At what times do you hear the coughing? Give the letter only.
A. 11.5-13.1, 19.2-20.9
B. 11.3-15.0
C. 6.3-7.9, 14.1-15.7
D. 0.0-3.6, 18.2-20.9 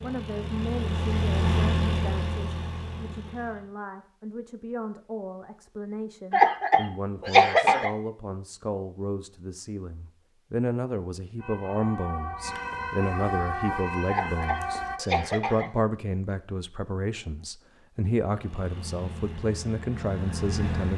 C.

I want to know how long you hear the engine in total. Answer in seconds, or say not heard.
6 s.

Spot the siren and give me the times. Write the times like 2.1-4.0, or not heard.
11.3-15.0.